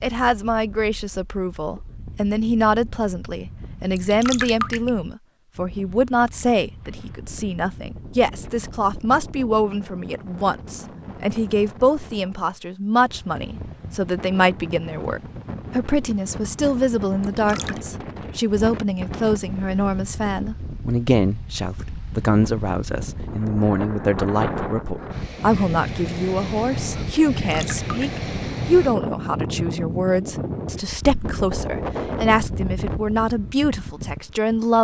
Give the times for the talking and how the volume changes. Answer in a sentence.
You can hear the talking from 0.0 to 34.7 s, at a steady volume.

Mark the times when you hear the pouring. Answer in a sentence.
The pouring can be heard from 4.0 to 4.9 s, from 17.2 to 17.8 s and from 27.4 to 28.2 s.